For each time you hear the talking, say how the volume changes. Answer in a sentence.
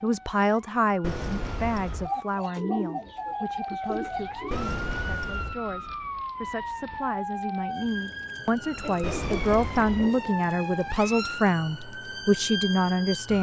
The talking can be heard from 0.0 to 13.3 s, getting quieter then louder.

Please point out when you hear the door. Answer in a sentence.
You can hear the door from 1.0 to 2.1 s, from 4.5 to 5.5 s and from 9.0 to 10.1 s.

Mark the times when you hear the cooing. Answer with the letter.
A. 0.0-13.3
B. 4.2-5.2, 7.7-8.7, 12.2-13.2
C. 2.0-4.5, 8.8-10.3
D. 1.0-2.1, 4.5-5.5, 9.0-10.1
C.